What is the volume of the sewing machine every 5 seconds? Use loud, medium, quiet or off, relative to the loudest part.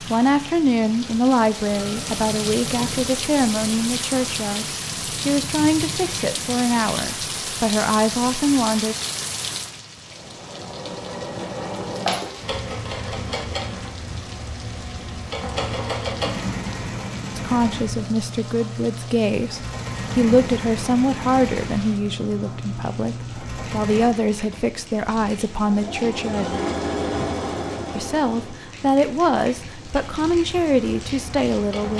medium, off, loud, loud, loud, loud, medium.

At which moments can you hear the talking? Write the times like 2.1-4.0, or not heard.
0.0-8.9, 17.4-26.6, 27.9-31.9.